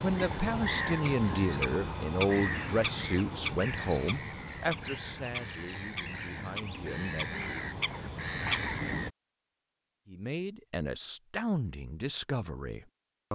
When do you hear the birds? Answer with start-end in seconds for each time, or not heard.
0.0-9.1.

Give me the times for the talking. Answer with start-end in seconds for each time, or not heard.
0.0-7.3, 10.1-13.3.